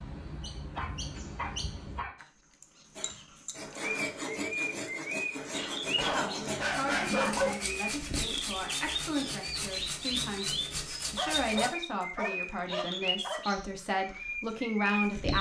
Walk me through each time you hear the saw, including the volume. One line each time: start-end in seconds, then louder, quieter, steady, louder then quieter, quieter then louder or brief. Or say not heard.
3.0-11.7 steady.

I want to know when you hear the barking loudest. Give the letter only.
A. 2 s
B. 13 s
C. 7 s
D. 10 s
C.